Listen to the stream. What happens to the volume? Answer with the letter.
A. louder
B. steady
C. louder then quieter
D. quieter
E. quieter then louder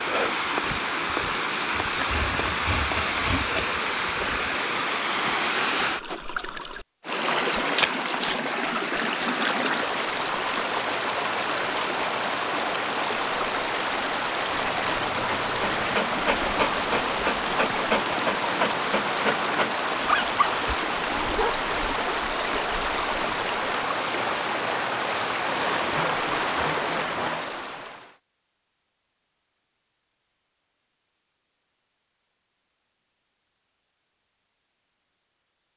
B.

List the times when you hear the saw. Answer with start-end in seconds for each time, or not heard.
1.9-3.8, 14.4-15.9, 25.4-27.5.